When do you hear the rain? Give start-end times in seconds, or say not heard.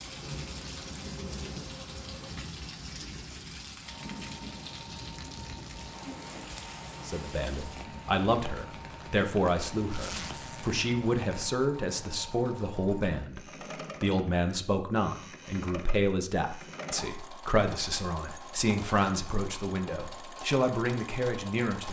0.0-11.6.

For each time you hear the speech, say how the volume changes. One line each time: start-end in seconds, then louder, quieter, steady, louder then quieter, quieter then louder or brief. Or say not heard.
7.0-21.8 steady.